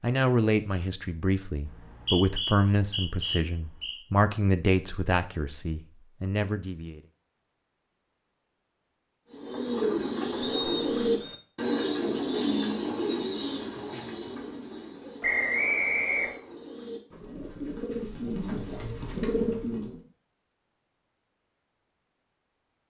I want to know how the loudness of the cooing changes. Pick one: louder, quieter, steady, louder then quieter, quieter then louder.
quieter then louder.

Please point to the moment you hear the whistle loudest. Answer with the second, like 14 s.
16 s.